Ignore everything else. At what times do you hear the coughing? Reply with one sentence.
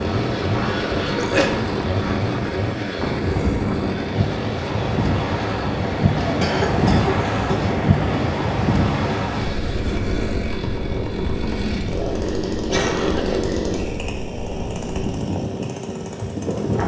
The coughing can be heard from 0.8 to 1.5 s, from 6.2 to 7.7 s and from 12.7 to 13.4 s.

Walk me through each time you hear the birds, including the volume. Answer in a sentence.
The birds can't be heard in this clip.